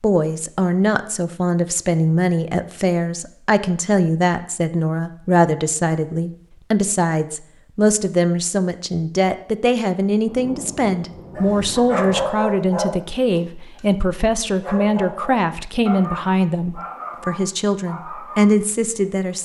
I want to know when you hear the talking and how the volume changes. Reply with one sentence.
The talking can be heard from 0.0 to 19.4 s, at a steady volume.